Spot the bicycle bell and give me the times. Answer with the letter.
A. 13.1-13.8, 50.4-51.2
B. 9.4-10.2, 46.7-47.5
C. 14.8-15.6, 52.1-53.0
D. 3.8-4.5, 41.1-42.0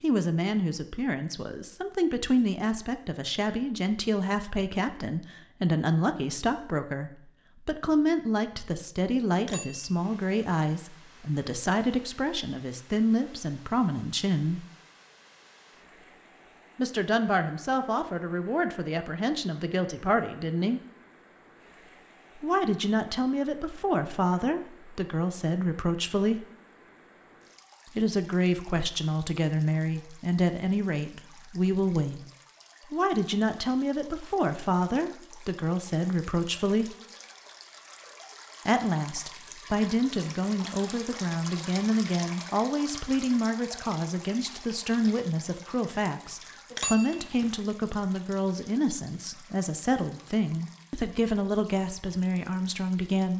B.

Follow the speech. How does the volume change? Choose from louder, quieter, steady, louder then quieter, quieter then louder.
steady.